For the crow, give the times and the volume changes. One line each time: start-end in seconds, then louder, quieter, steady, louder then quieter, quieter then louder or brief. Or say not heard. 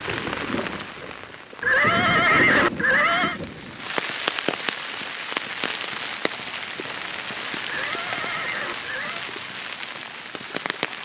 not heard.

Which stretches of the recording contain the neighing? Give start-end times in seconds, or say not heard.
1.6-3.4, 7.7-9.3.